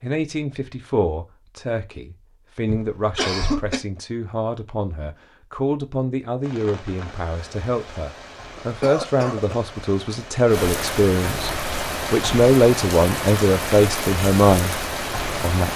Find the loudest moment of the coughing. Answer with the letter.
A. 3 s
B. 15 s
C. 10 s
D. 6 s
A.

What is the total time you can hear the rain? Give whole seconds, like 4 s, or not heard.
9 s.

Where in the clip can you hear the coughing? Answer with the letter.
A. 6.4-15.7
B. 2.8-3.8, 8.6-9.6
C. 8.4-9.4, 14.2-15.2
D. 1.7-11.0
B.